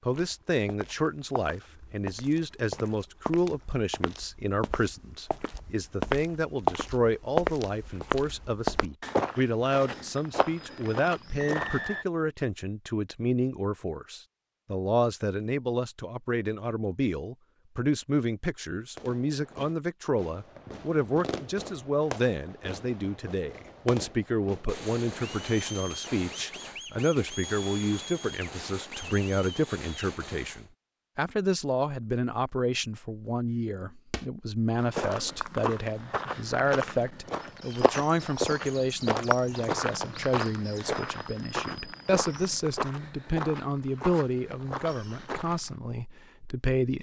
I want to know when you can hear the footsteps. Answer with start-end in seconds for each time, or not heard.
0.1-11.8, 34.1-45.8.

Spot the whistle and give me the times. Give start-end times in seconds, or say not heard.
11.3-12.1.